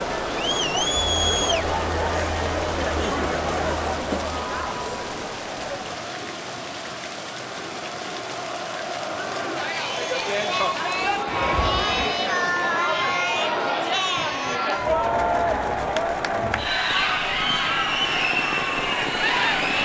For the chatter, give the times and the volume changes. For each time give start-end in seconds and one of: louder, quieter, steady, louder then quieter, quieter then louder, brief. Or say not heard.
0.0-19.8 quieter then louder.